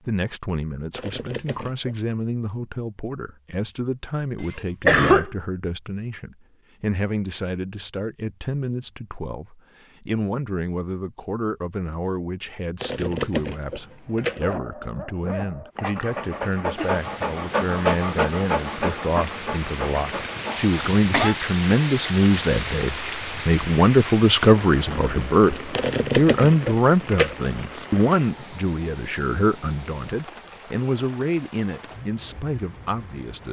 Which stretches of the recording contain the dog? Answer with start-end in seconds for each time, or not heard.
14.2-20.8.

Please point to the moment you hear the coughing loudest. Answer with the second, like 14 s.
5 s.